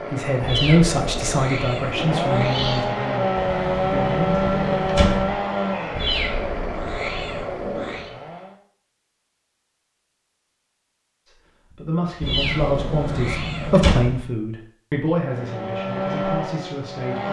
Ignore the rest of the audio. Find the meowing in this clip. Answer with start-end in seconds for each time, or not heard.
0.4-2.9, 6.0-8.1, 12.2-13.9.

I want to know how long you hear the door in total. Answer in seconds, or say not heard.
4 s.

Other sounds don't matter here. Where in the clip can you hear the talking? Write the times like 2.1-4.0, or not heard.
0.0-4.8, 11.2-17.2.